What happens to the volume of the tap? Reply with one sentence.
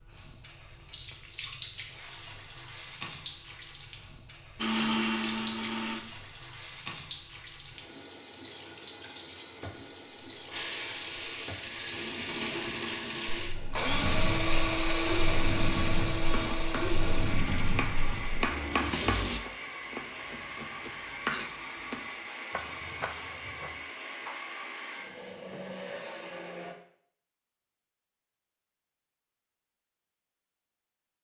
The volume of the tap goes up.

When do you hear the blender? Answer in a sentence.
You can hear the blender from 4.5 to 6.0 s and from 10.3 to 26.8 s.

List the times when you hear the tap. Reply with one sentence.
The tap can be heard from 0.0 to 19.4 s.